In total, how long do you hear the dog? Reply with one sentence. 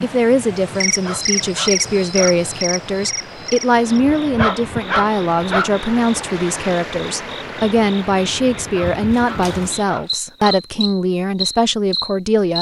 You can hear the dog for 5 seconds altogether.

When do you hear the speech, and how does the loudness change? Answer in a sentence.
The speech can be heard from 0.0 to 12.5 s, at a steady volume.